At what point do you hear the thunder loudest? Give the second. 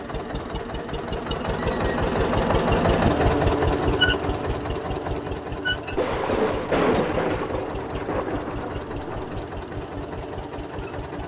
7 s.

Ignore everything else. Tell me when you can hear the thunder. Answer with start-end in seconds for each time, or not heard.
5.9-9.4.